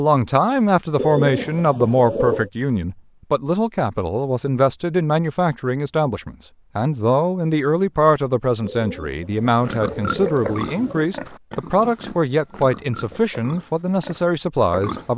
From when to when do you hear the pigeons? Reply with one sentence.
The pigeons can be heard from 0.9 to 2.5 s and from 8.6 to 11.2 s.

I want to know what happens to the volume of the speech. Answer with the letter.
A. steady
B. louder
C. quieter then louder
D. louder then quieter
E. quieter
A.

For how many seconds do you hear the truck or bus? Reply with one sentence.
The truck or bus can't be heard in this clip.